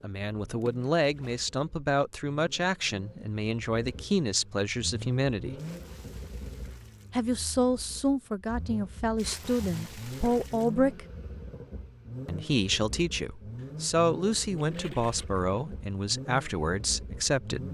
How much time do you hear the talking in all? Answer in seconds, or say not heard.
15 s.